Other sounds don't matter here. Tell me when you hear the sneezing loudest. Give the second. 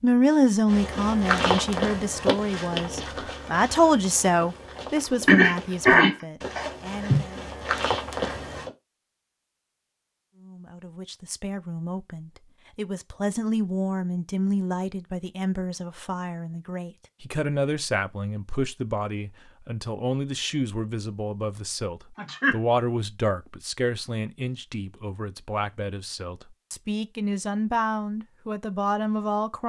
6 s.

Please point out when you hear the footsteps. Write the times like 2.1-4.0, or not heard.
0.7-8.7.